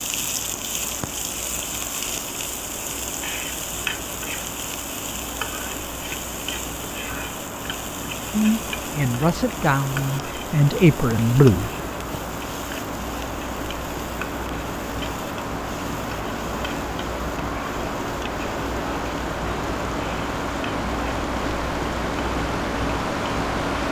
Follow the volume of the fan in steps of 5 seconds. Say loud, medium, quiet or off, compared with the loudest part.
medium, medium, medium, loud, loud.